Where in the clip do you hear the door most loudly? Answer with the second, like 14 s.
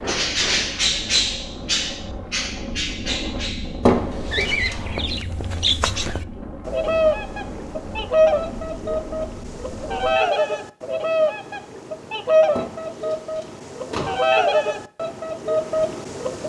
4 s.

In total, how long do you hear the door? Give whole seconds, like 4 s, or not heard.
3 s.